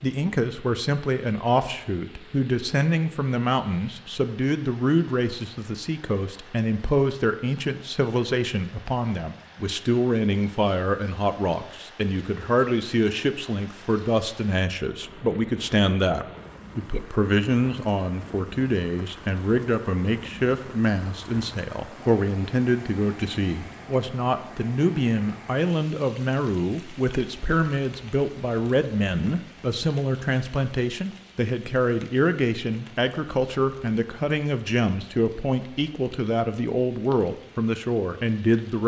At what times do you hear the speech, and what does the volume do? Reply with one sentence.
The speech can be heard from 0.0 to 38.8 s, at a steady volume.